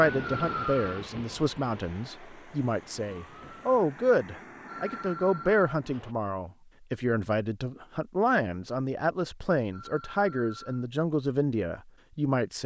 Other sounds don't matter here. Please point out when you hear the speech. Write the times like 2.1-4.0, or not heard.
0.0-12.6.